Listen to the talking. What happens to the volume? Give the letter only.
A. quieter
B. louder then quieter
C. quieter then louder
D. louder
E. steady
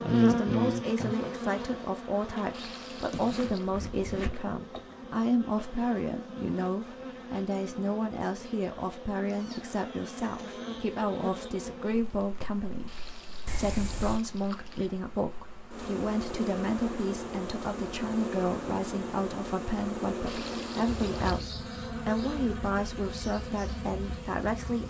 E.